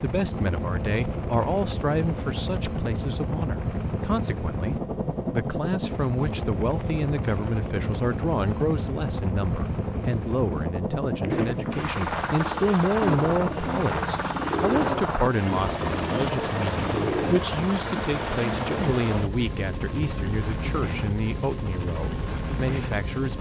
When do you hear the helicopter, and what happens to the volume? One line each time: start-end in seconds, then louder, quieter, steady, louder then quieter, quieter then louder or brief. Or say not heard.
0.0-23.3 steady.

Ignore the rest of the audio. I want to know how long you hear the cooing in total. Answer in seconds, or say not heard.
6 s.